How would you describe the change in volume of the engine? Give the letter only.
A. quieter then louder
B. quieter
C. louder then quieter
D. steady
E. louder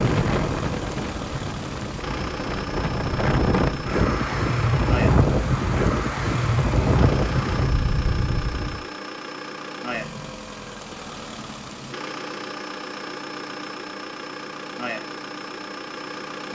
D.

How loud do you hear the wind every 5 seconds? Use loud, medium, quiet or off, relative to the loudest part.
loud, loud, off, off.